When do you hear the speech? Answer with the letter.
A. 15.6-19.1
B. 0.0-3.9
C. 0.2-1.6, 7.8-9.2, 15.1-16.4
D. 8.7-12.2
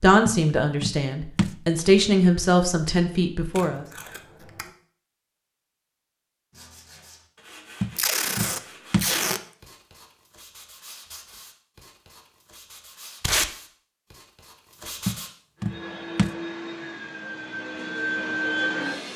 B.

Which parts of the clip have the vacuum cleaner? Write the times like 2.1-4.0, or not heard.
15.6-19.1.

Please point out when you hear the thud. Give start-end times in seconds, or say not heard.
0.2-1.6, 7.8-9.2, 15.1-16.4.